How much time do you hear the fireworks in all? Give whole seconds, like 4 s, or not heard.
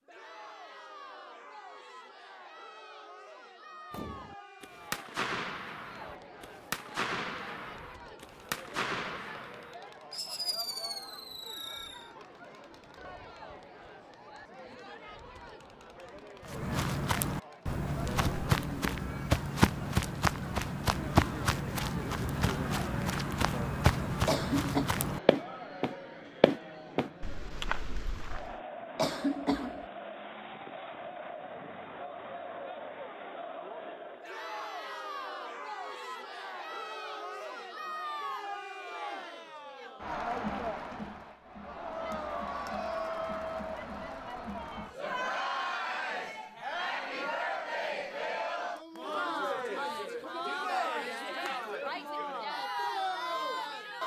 8 s.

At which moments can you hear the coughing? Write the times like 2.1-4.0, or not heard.
24.2-24.9, 28.9-29.9.